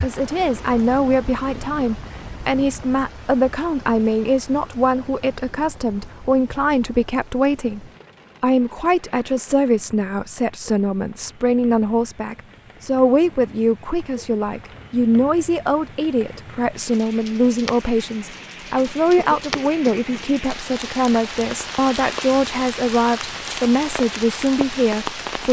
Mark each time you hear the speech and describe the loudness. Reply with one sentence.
You can hear the speech from 0.0 to 25.4 s, at a steady volume.